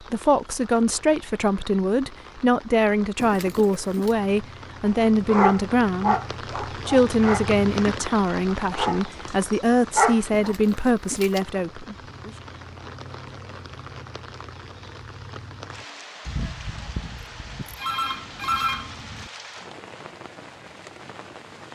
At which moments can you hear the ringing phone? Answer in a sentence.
The ringing phone can be heard from 17.8 to 19.3 s.